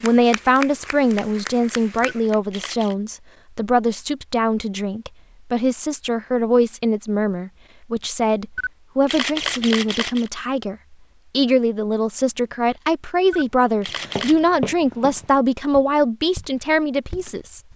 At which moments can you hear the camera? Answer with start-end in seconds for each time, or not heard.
2.0-3.0, 8.6-10.3, 13.3-14.4.